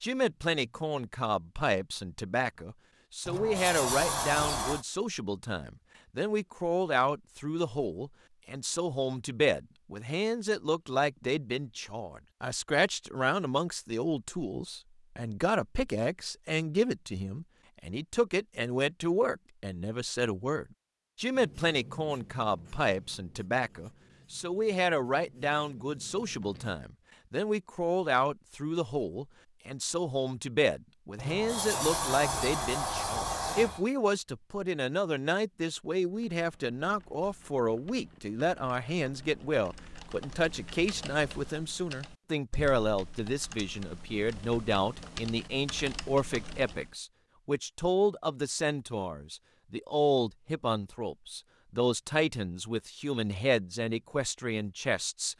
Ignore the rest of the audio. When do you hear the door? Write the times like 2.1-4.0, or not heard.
3.2-4.8, 31.1-33.9.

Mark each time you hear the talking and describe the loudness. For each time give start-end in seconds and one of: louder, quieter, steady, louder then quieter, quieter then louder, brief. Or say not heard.
0.0-55.3 steady.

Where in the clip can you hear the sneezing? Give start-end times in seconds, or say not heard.
not heard.